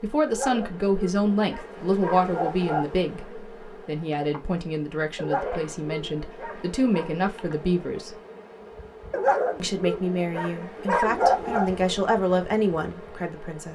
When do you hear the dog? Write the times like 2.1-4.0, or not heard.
0.2-2.9, 5.2-7.1, 9.1-11.7.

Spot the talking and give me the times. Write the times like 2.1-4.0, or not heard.
0.0-8.2, 9.6-13.6.